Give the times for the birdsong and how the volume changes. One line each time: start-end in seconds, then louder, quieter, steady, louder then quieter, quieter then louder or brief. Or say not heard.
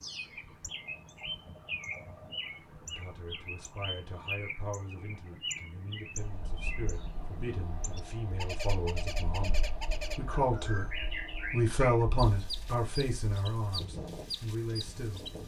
0.0-15.4 steady.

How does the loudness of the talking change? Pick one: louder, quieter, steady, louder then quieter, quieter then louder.
louder then quieter.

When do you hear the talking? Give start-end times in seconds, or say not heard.
2.9-15.2.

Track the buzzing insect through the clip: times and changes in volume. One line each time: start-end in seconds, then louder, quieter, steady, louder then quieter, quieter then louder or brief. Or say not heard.
not heard.